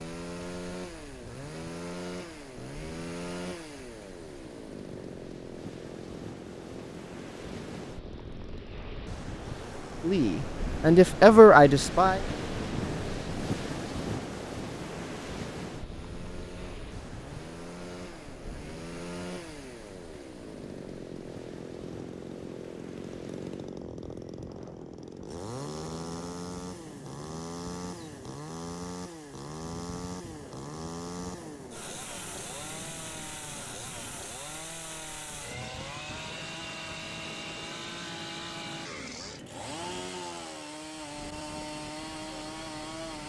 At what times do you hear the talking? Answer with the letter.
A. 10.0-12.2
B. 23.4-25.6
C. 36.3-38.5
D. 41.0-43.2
A.